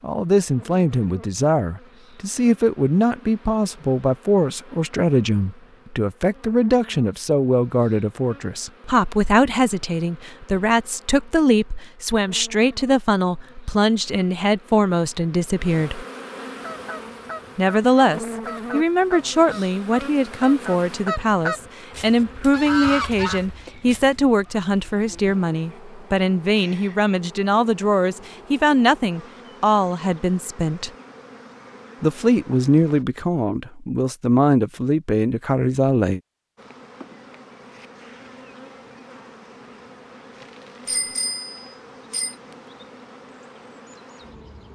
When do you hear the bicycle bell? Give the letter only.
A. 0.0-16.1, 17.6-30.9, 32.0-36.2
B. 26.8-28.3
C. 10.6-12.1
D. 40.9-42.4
D.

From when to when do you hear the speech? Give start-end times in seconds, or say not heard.
0.0-16.1, 17.6-30.9, 32.0-36.2.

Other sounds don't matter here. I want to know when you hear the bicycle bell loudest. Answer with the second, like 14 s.
41 s.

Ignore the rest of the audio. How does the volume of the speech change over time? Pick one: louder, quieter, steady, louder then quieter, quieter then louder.
steady.